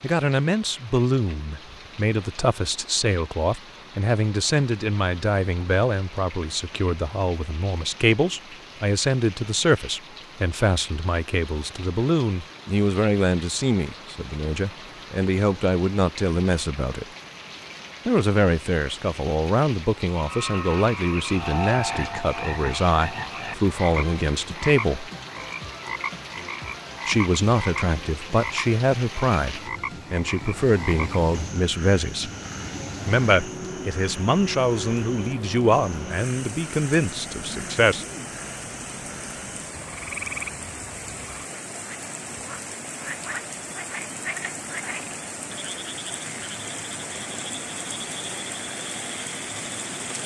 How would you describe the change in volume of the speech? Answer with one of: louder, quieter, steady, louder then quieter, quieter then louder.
steady.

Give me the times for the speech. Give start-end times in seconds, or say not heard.
0.0-17.1, 18.1-25.1, 27.1-32.3, 33.0-38.0.